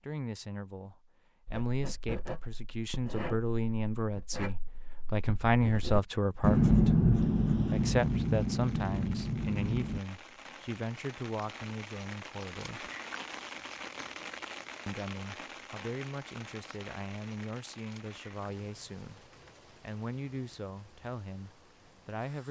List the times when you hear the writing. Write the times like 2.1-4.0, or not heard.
1.4-10.0.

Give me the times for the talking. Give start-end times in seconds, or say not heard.
0.0-12.9, 14.8-22.4.